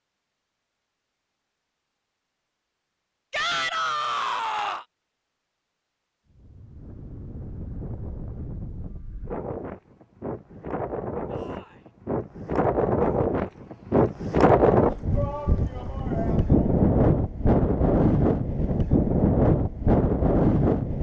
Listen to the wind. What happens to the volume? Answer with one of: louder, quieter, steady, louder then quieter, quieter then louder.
louder.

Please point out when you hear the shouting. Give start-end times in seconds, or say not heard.
3.3-4.8, 11.2-11.8, 15.1-16.7.